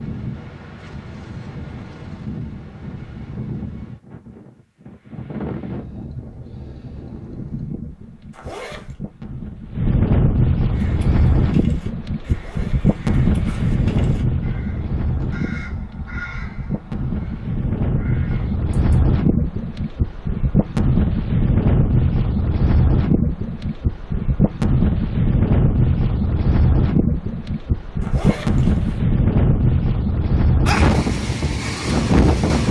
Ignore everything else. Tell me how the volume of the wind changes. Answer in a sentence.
The loudness of the wind goes up.